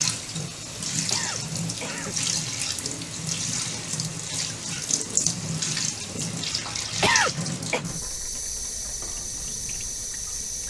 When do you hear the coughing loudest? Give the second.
7 s.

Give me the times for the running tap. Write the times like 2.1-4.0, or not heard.
0.0-10.6.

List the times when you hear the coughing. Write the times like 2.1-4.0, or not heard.
1.1-2.2, 7.0-7.8.